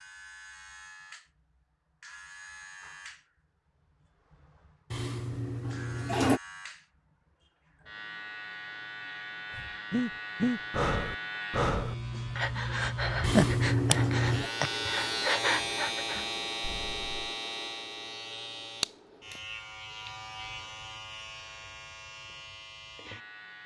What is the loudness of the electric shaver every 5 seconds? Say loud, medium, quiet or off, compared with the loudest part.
quiet, medium, loud, loud, medium.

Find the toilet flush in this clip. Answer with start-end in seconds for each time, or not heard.
4.9-6.4, 13.2-14.5.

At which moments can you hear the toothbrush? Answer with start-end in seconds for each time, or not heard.
not heard.